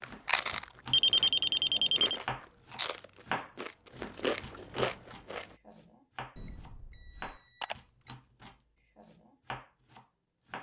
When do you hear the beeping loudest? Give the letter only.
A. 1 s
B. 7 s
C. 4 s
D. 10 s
A.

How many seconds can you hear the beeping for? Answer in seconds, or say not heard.
3 s.